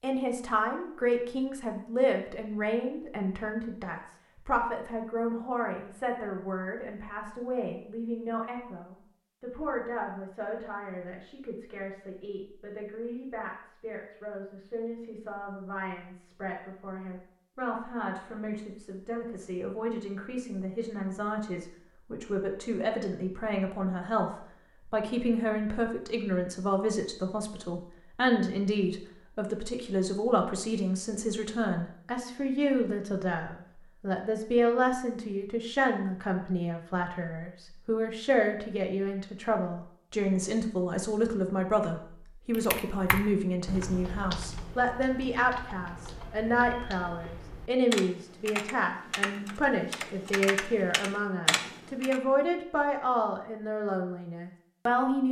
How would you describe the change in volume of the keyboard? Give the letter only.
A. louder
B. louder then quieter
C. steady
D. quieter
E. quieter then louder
E.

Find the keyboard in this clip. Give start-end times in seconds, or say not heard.
42.5-52.2.